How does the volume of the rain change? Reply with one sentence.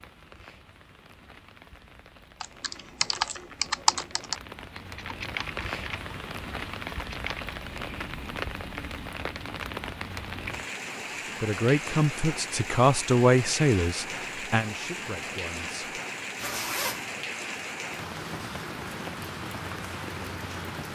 The loudness of the rain goes up.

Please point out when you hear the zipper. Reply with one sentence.
You can hear the zipper from 16.4 to 17.1 s.